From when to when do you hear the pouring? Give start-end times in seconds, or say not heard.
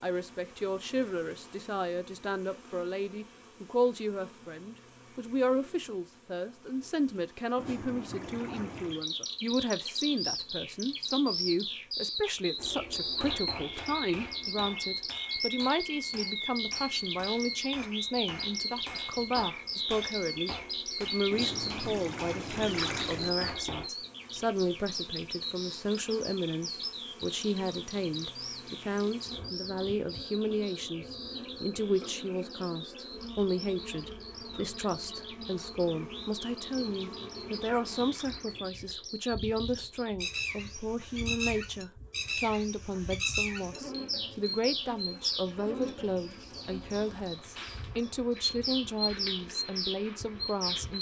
7.5-9.1, 21.3-23.3, 36.6-38.7.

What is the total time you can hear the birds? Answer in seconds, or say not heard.
42 s.